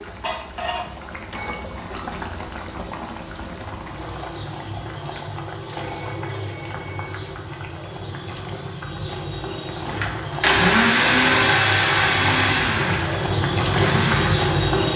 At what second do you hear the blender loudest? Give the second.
11 s.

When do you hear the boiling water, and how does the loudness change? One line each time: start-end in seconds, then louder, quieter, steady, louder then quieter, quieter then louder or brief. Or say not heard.
0.0-14.9 louder.